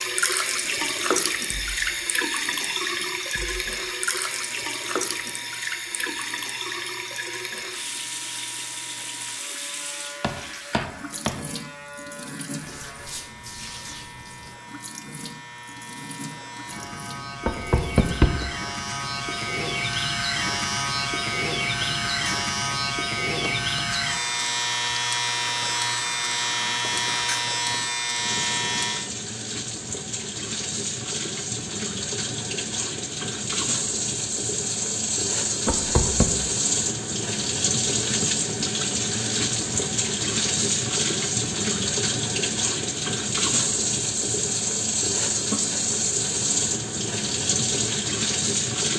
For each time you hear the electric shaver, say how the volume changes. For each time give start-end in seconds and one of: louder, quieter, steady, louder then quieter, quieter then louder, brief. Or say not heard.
0.0-29.1 louder.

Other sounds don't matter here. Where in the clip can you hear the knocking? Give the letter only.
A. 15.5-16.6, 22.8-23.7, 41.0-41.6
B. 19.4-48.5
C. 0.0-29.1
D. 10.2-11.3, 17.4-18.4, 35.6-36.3
D.